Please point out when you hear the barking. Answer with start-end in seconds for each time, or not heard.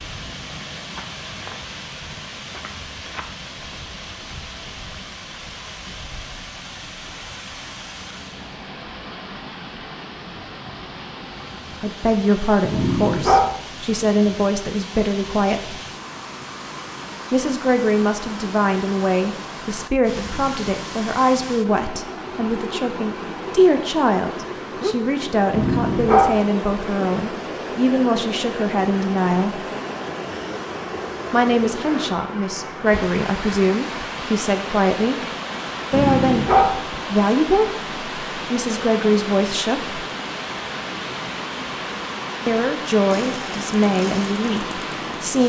12.7-13.5, 25.5-26.4, 35.9-36.8.